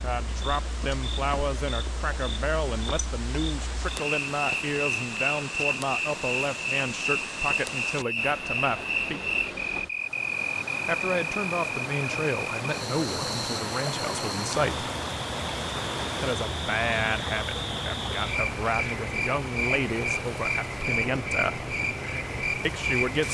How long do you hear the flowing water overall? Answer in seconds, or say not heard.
23 s.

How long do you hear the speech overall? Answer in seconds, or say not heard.
19 s.